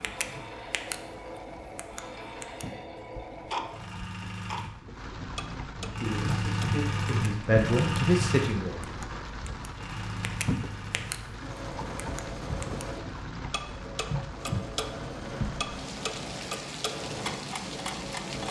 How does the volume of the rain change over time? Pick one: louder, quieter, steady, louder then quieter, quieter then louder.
louder.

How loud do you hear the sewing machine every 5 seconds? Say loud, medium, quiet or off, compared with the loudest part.
medium, loud, medium, medium.